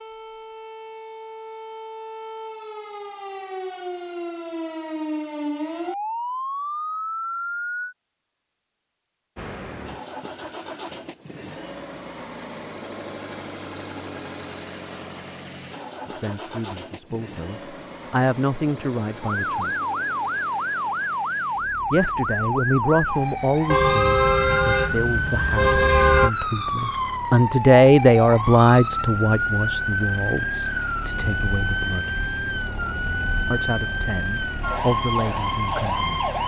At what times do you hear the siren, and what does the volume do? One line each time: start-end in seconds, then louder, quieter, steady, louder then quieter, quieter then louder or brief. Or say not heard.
0.0-8.0 louder
19.2-36.4 steady.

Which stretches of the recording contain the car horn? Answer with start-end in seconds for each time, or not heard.
23.7-26.3.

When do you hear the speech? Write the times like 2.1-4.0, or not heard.
16.2-19.8, 21.9-32.1, 33.5-36.1.